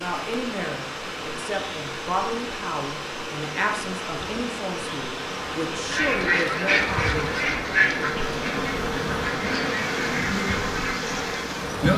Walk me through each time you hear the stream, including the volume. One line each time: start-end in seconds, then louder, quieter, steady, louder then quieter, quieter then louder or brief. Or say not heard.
0.0-11.9 steady.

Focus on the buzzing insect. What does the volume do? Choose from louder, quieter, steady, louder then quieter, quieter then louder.
louder.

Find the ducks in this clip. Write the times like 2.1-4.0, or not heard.
5.8-11.4.